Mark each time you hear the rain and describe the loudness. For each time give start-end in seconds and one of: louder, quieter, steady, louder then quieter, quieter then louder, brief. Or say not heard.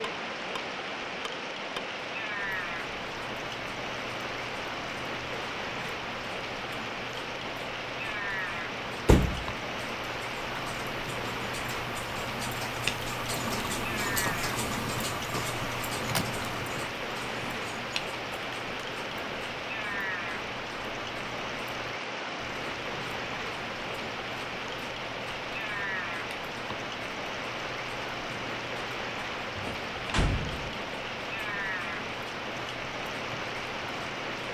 0.0-34.5 steady.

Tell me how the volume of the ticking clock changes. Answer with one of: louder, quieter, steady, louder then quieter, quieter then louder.
louder then quieter.